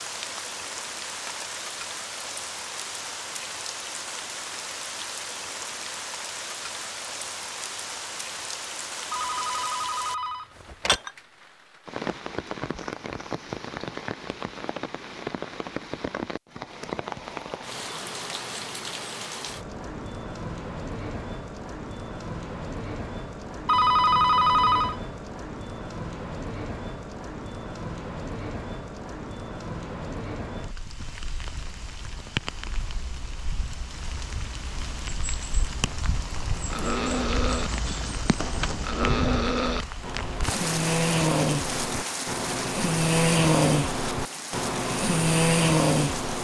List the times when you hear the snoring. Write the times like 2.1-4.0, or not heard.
36.3-46.3.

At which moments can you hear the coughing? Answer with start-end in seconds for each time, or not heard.
not heard.